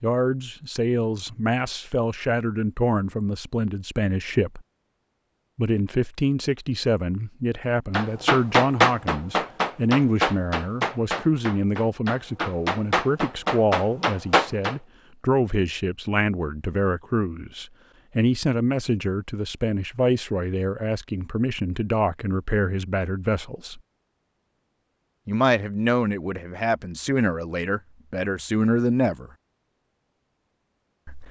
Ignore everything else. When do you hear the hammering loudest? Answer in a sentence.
The volume of the hammering peaks at 9 seconds.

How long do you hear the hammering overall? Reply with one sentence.
The hammering can be heard for 7 seconds in total.